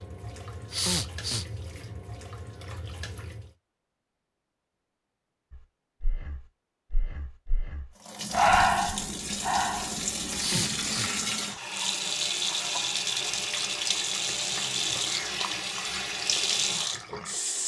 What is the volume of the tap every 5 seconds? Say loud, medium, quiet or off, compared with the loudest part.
quiet, medium, loud, loud.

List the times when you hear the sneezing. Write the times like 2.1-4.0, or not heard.
0.7-1.4, 10.3-11.6.